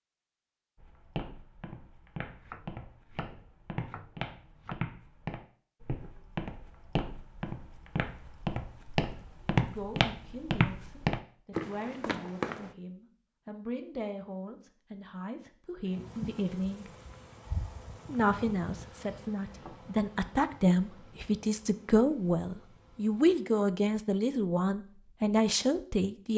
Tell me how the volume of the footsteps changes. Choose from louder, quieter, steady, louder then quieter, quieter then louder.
louder.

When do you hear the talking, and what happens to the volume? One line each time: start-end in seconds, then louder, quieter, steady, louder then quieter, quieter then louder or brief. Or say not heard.
9.6-16.9 louder
18.1-26.3 louder.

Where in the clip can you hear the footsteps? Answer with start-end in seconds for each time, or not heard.
0.8-12.7.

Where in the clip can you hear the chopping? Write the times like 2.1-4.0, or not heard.
2.4-4.8.